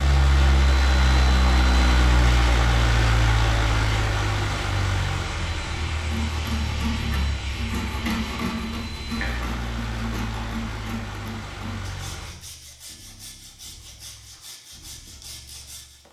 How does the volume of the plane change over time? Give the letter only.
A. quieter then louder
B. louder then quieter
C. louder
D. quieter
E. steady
D.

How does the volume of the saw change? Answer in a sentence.
The volume of the saw goes down.